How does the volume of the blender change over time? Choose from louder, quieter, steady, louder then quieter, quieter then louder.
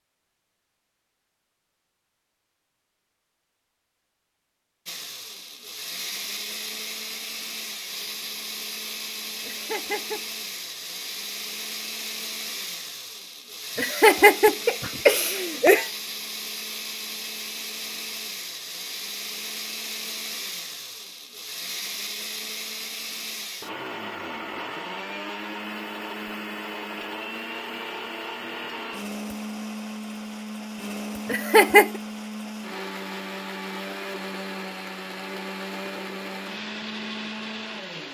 steady.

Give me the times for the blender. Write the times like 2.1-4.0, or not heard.
4.8-38.0.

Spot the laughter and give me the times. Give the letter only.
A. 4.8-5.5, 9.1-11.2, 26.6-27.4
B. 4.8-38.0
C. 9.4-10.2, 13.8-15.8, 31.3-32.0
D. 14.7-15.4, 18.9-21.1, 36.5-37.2
C.